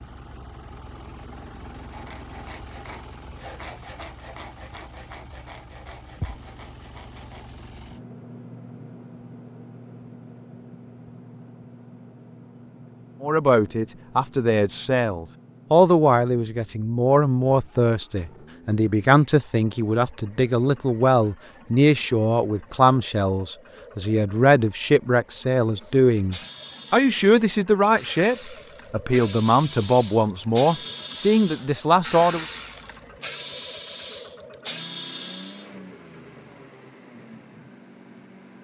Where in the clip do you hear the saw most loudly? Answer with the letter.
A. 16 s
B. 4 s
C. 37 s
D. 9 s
B.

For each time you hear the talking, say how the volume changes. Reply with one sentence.
You can hear the talking from 13.2 to 32.5 s, at a steady volume.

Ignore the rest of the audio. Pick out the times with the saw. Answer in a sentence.
You can hear the saw from 1.9 to 7.5 s.